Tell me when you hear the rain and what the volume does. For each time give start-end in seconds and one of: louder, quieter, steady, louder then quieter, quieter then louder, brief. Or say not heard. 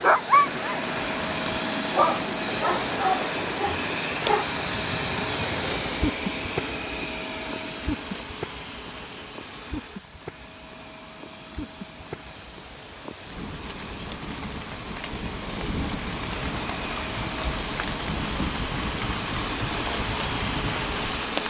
0.0-21.4 quieter then louder.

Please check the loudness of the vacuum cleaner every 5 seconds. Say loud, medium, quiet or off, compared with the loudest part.
loud, loud, quiet, medium, loud.